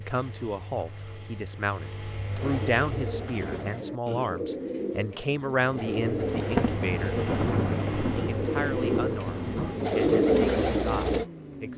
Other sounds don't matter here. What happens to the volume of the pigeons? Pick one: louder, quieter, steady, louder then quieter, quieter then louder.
louder.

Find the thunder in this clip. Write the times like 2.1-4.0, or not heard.
6.3-9.9.